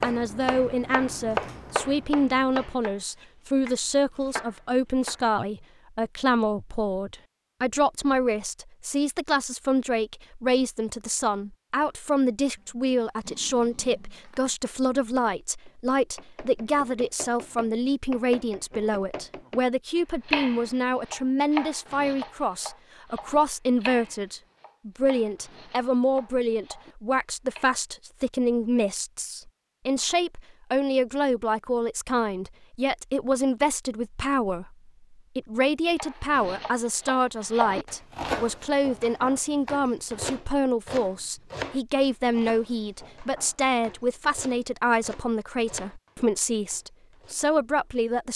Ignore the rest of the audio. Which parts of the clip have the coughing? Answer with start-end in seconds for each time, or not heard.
not heard.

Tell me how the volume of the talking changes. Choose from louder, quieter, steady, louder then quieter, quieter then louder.
steady.